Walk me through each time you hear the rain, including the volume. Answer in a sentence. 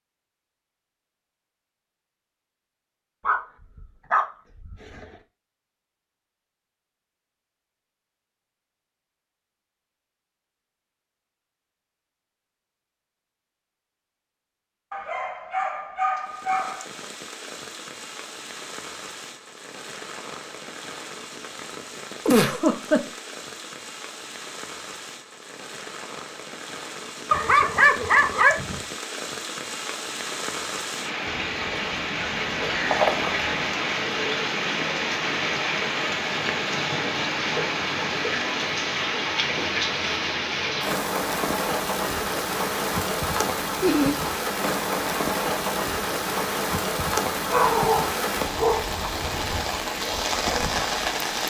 You can hear the rain from 16.2 to 51.4 s, getting louder.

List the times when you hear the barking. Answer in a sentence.
The barking can be heard from 3.2 to 5.0 s, from 14.9 to 16.9 s, from 27.3 to 28.8 s, from 31.2 to 33.5 s and from 47.5 to 48.9 s.